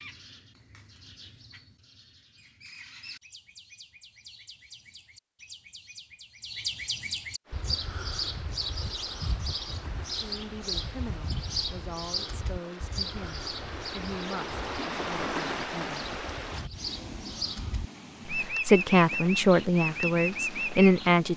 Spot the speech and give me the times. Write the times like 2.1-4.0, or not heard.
10.2-16.1, 18.2-21.3.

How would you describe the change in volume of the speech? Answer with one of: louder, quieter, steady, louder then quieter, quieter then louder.
louder.